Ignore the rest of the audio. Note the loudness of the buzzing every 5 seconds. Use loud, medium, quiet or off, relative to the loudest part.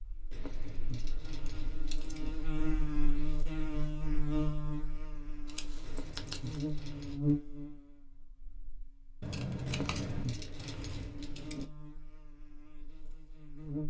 loud, loud, medium.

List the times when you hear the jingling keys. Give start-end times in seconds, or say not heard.
0.3-2.3, 5.8-7.2, 9.7-11.7.